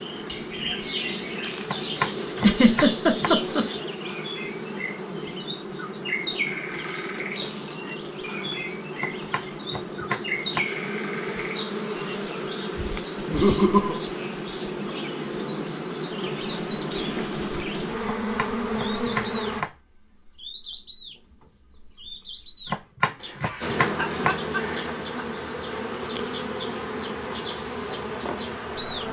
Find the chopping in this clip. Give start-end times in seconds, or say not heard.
1.6-3.4, 9.0-10.7, 18.1-19.7, 22.6-24.4.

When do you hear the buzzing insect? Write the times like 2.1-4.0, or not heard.
0.0-19.6, 23.6-29.0.